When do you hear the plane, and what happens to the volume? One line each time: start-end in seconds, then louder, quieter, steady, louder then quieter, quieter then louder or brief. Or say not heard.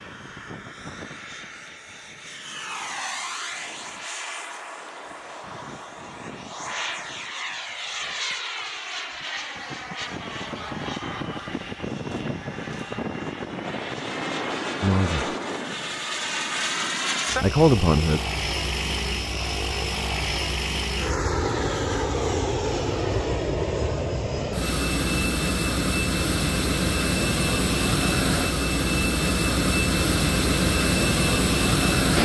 0.0-32.2 louder.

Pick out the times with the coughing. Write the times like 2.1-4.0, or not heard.
not heard.